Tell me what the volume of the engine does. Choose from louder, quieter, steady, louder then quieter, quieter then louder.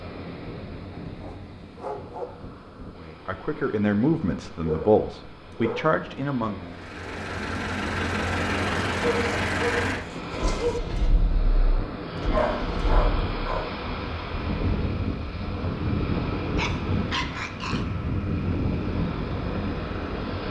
quieter.